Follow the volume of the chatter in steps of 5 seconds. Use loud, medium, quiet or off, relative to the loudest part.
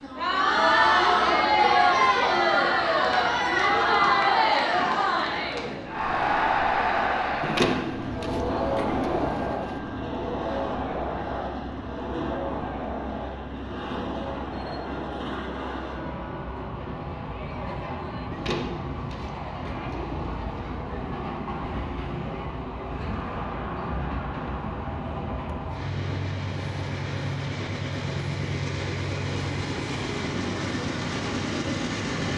loud, medium, quiet, quiet, quiet, off, off.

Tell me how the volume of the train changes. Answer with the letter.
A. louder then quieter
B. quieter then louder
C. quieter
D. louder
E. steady
D.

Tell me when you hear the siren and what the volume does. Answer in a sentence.
You can't hear the siren here.